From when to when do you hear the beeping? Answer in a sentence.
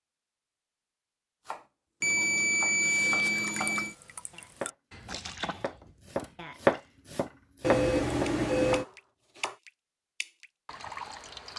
You can hear the beeping from 2.0 to 4.0 s and from 7.6 to 8.8 s.